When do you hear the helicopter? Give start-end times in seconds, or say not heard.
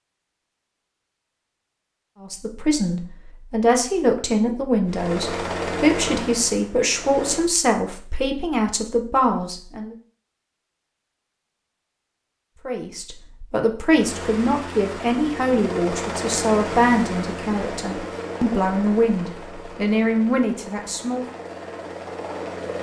4.8-7.5, 13.9-22.7.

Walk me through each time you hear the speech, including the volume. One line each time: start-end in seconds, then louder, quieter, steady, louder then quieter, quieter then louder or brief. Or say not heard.
2.2-9.9 steady
12.7-21.2 steady.